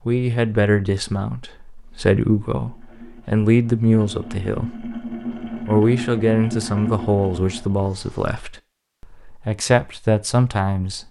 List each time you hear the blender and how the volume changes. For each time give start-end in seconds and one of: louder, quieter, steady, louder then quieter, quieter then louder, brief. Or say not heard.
not heard.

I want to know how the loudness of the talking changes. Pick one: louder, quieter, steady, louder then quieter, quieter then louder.
steady.